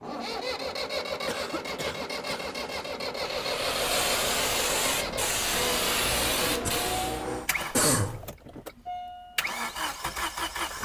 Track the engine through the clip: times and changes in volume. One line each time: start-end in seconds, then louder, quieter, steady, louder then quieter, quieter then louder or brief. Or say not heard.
0.0-10.8 steady.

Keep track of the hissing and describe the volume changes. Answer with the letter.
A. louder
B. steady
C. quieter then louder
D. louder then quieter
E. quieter
A.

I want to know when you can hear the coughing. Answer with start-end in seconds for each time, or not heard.
1.2-2.5, 6.6-8.3.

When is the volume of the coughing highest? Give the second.
8 s.